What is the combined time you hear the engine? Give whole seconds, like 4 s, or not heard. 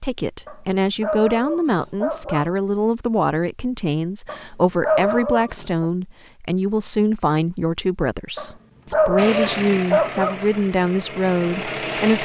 3 s.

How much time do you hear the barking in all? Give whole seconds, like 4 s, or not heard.
6 s.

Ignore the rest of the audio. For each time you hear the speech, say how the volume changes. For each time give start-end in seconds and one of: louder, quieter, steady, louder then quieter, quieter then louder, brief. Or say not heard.
0.0-12.2 steady.